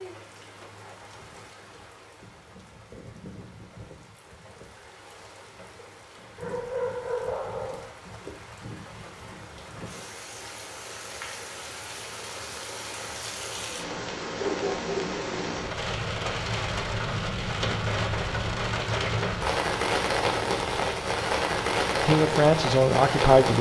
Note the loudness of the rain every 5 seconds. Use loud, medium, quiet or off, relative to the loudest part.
quiet, quiet, medium, loud, loud.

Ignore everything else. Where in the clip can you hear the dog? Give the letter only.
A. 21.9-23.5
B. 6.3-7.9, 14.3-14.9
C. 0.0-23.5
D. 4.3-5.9
B.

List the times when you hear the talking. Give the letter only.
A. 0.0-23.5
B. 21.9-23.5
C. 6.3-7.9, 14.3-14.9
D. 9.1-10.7
B.